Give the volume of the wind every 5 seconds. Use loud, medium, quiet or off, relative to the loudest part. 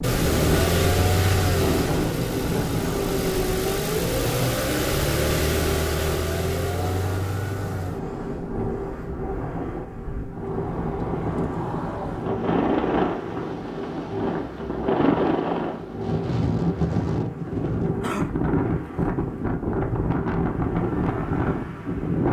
loud, medium, loud, loud, loud.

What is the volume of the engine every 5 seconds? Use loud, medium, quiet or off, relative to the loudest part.
loud, loud, medium, medium, quiet.